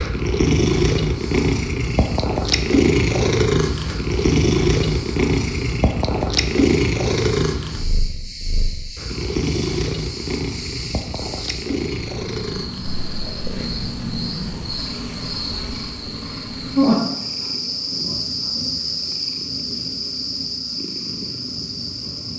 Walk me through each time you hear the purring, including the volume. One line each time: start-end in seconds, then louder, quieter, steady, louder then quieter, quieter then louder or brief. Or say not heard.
0.0-22.3 quieter.